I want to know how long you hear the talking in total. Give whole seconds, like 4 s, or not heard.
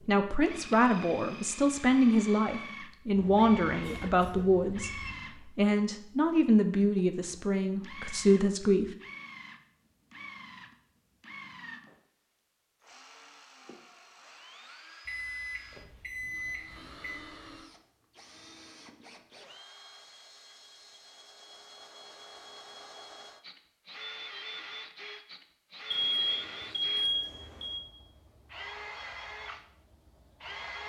9 s.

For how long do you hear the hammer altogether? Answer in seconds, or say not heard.
not heard.